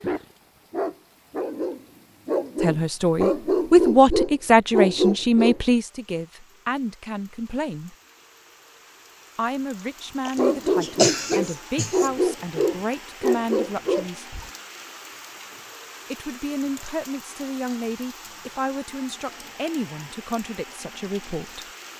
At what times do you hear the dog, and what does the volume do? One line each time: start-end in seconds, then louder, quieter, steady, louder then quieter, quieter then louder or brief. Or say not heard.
0.0-5.5 louder
10.3-14.5 steady.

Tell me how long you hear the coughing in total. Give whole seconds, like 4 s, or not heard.
2 s.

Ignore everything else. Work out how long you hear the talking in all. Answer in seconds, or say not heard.
16 s.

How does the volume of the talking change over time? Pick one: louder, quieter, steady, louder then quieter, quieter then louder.
quieter.